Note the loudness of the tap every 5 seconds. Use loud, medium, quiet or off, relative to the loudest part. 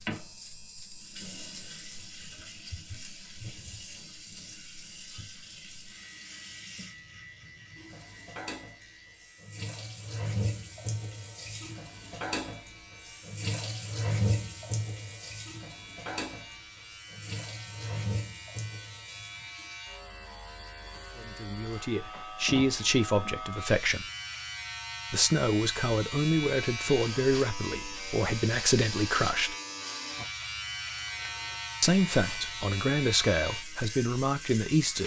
medium, medium, loud, medium, off, off, off.